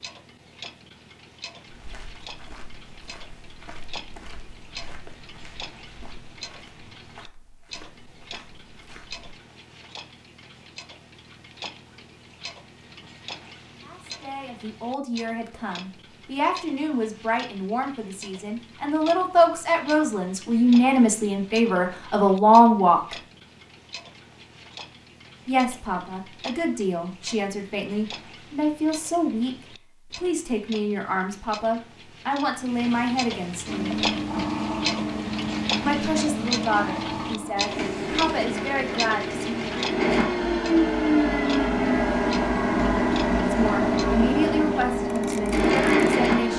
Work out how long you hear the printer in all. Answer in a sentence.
The printer can be heard for 13 seconds in total.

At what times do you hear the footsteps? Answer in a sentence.
You can hear the footsteps from 1.7 to 9.3 s.